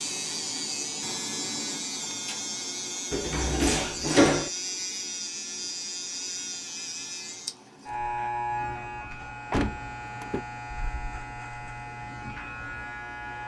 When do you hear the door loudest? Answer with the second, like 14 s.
4 s.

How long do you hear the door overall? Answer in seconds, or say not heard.
2 s.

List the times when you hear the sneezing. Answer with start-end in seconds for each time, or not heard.
not heard.